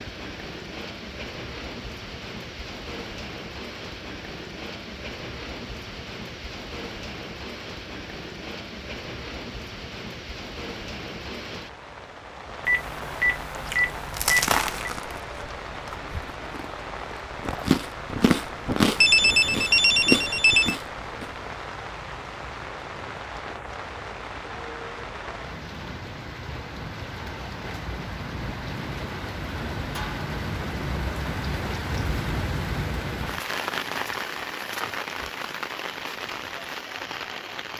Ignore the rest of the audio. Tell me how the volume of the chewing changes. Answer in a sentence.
The loudness of the chewing goes down, then up.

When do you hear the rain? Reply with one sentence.
You can hear the rain from 0.0 to 37.7 s.